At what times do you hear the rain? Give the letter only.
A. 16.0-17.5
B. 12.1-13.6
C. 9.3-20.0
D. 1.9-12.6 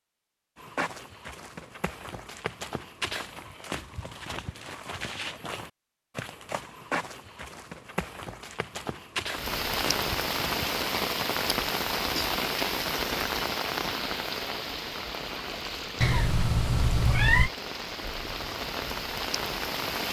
C.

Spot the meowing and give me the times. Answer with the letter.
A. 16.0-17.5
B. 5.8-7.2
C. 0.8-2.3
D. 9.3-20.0
A.